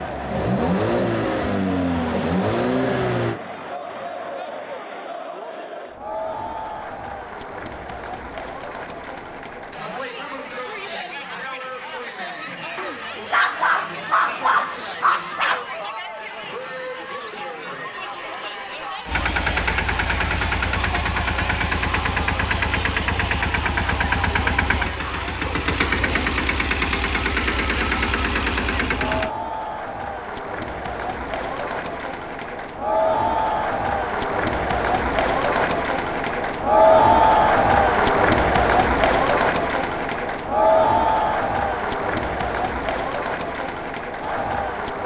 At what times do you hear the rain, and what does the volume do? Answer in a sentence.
You can't hear the rain here.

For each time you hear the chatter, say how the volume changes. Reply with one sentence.
The chatter can be heard from 0.0 to 45.0 s, getting louder.